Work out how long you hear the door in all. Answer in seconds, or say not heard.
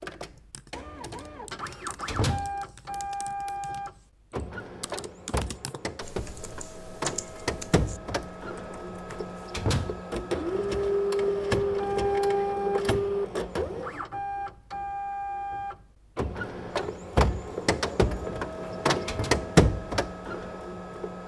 3 s.